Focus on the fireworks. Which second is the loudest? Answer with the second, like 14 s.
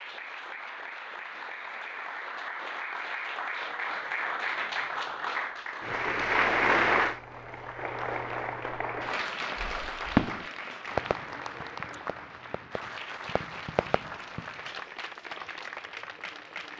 10 s.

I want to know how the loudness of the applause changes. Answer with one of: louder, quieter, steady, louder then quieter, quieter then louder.
louder then quieter.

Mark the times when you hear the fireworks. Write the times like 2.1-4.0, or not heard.
9.6-14.8.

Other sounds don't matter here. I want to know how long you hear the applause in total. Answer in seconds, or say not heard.
17 s.